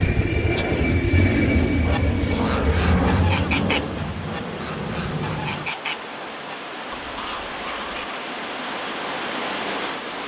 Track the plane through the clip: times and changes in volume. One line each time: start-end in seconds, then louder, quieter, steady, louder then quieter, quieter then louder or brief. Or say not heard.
0.0-5.8 quieter.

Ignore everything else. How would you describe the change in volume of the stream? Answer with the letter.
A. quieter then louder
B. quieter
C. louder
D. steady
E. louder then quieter
C.